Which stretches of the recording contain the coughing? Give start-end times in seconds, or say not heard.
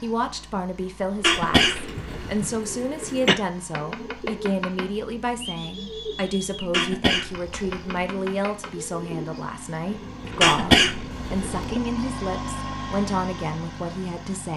1.2-2.4, 6.7-8.1, 10.4-11.8.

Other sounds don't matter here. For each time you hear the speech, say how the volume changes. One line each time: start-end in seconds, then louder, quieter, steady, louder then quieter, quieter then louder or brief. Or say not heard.
0.0-14.5 steady.